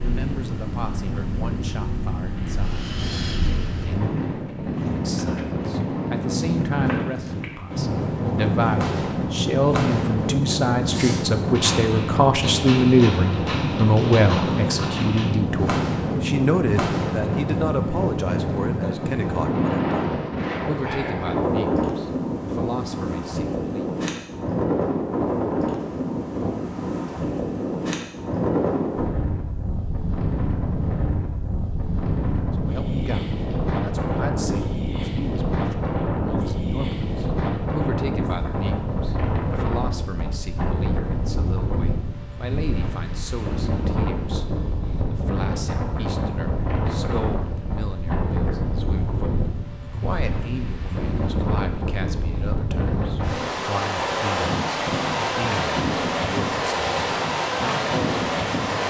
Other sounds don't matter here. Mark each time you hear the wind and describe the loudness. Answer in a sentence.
The wind can be heard from 0.0 to 58.8 s, at a steady volume.